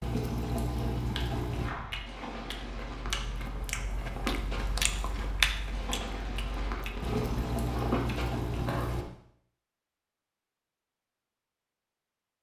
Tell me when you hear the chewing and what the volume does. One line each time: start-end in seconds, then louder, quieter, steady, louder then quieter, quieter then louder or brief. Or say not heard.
0.9-9.1 louder then quieter.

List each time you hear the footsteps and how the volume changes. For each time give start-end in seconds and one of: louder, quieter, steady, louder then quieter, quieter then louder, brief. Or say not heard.
1.5-8.2 steady.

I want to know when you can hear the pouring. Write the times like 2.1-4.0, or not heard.
0.0-1.8, 7.0-9.1.